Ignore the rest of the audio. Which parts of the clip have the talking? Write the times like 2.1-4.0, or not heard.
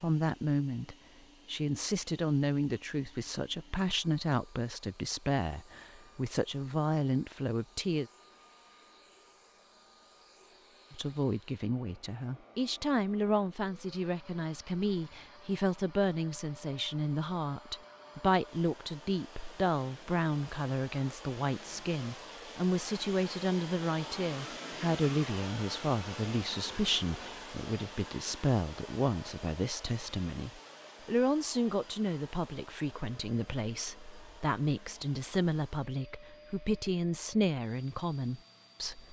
0.0-8.1, 10.9-39.0.